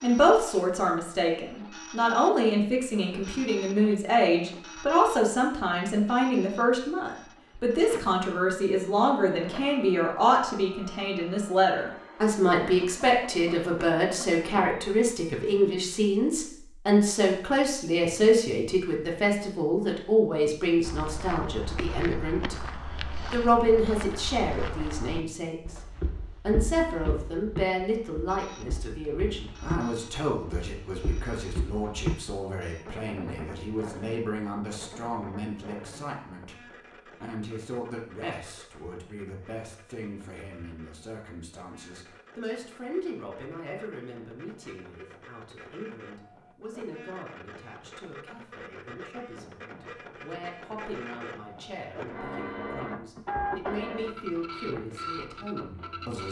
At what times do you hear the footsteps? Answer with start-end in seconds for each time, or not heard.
20.8-32.4.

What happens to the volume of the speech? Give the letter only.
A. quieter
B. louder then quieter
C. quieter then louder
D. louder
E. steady
A.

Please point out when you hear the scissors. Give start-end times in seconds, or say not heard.
not heard.